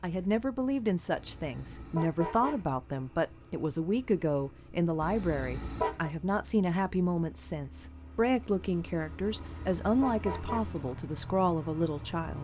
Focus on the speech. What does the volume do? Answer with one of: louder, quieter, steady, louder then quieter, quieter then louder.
steady.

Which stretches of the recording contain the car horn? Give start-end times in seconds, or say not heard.
1.1-2.6, 5.0-6.1, 9.2-10.7.